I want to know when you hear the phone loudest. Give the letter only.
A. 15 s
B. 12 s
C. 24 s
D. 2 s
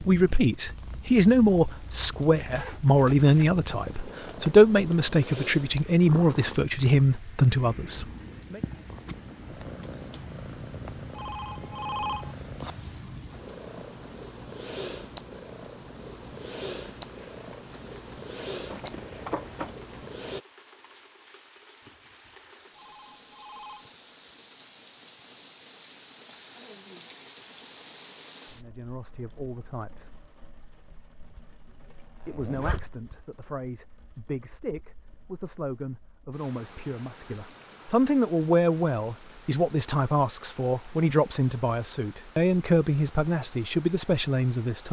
B.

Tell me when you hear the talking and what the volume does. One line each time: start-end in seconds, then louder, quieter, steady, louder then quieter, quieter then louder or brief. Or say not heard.
0.0-8.6 steady
28.6-30.1 brief
32.2-44.8 louder.